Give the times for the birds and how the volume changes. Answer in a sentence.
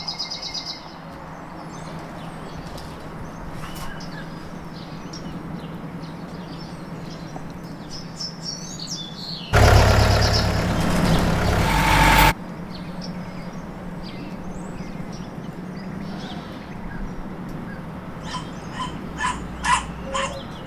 You can hear the birds from 0.0 to 20.6 s, getting louder then quieter.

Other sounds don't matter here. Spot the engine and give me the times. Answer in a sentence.
You can hear the engine from 9.5 to 12.3 s.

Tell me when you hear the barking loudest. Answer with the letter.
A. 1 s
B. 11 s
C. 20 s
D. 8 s
C.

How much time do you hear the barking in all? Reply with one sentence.
The barking can be heard for 2 seconds in total.